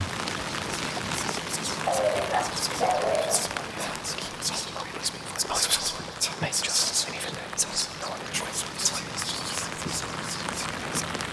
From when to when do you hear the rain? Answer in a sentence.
You can hear the rain from 0.0 to 11.2 s.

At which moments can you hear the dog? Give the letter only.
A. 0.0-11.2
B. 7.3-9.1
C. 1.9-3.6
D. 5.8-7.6
C.